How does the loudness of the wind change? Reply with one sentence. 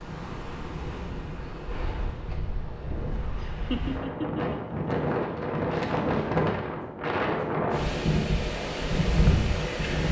The volume of the wind goes up.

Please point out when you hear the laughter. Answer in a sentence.
You can hear the laughter from 3.4 to 4.9 s.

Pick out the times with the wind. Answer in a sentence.
The wind can be heard from 0.0 to 10.0 s.